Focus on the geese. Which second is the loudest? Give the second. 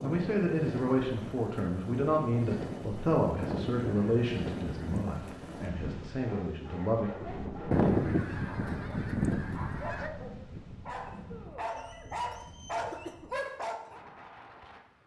8 s.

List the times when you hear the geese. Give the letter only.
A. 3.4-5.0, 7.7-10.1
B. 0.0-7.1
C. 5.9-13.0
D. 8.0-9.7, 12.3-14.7
A.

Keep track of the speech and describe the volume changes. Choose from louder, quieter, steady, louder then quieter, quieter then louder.
quieter.